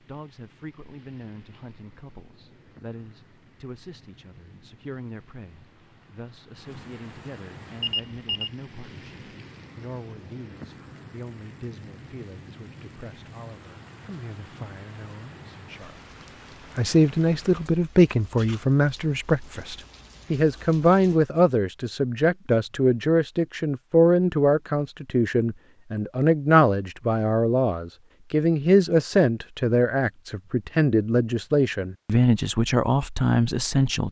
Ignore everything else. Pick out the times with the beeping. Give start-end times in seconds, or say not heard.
7.8-8.5.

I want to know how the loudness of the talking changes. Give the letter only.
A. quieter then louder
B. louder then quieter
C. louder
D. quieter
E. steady
C.